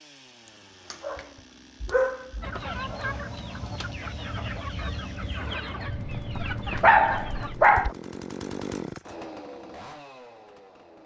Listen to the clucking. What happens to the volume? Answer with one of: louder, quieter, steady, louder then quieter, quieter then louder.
steady.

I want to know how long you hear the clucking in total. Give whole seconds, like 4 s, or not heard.
5 s.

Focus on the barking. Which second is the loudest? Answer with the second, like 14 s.
7 s.